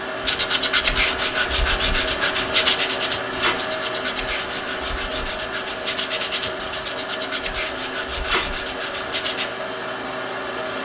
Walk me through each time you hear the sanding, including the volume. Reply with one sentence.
The sanding can be heard from 0.2 to 9.5 s, getting quieter.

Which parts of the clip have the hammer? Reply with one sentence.
The hammer can't be heard in this clip.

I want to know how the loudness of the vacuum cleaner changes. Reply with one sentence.
The loudness of the vacuum cleaner stays about the same.